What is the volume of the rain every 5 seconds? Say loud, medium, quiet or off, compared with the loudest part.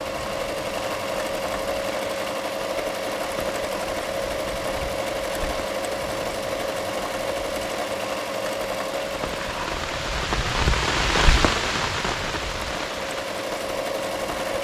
medium, medium, loud.